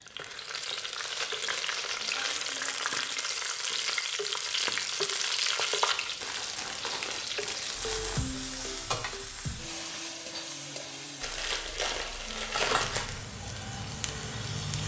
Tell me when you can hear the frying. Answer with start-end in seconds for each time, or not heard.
0.0-14.8.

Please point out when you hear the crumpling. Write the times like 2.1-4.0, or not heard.
0.9-2.4, 6.2-8.2, 11.2-13.2.